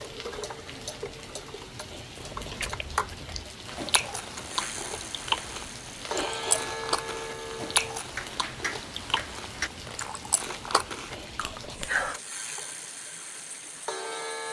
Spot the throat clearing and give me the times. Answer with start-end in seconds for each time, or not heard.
1.9-2.6, 6.1-6.6, 11.1-11.9.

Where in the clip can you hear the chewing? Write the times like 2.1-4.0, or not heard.
2.1-12.2.